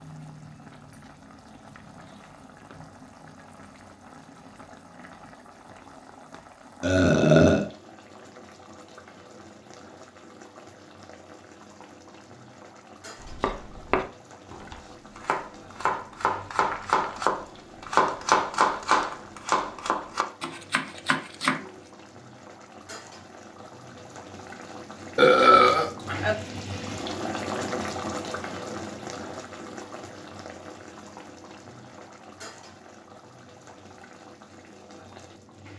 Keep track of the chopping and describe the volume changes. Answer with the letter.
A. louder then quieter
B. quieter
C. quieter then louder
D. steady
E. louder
A.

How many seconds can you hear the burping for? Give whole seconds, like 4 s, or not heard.
2 s.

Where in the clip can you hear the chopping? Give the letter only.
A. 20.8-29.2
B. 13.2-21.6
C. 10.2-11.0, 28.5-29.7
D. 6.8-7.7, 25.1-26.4
B.